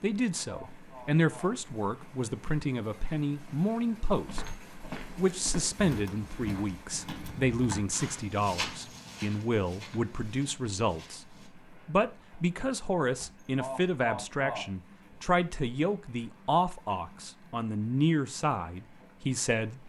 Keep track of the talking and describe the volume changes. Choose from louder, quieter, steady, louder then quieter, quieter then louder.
steady.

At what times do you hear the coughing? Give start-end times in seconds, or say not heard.
0.4-1.6, 13.6-14.7.